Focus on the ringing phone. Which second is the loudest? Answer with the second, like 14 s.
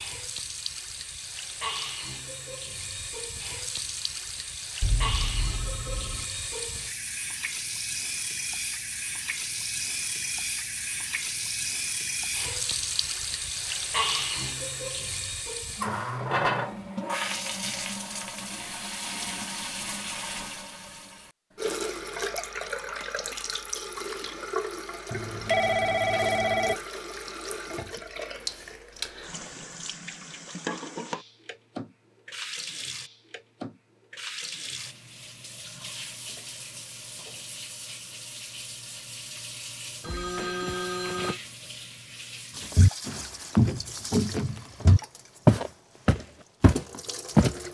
26 s.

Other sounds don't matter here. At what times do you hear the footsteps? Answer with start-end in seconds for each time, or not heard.
42.8-47.5.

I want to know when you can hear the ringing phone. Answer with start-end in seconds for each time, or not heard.
4.8-6.2, 25.1-26.8, 40.0-41.4.